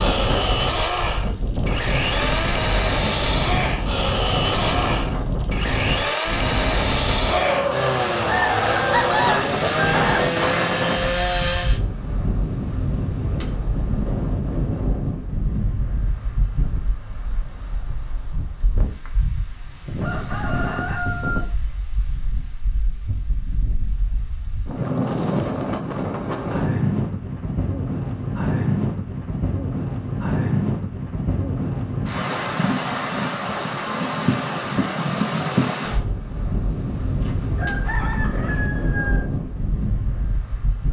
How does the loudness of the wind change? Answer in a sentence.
The volume of the wind goes down, then up.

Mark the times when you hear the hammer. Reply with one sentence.
The hammer can't be heard in this clip.